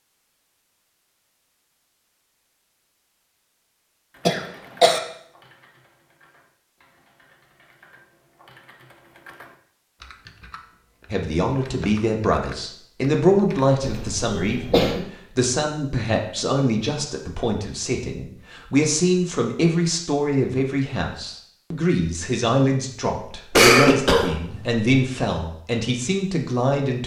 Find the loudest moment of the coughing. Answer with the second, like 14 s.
24 s.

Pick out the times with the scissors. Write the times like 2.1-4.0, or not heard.
not heard.